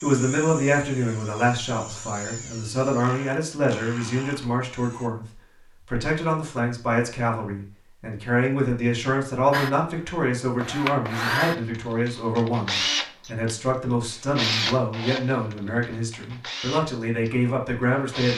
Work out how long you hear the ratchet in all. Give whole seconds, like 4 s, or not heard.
not heard.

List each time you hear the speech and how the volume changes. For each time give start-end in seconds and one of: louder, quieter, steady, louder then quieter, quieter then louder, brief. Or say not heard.
0.0-18.3 steady.